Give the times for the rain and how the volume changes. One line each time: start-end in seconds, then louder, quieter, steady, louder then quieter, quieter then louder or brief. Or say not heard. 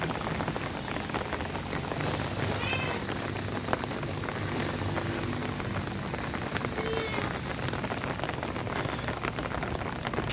0.0-10.2 steady.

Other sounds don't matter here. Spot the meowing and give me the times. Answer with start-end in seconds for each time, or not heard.
2.0-3.0, 6.8-7.3.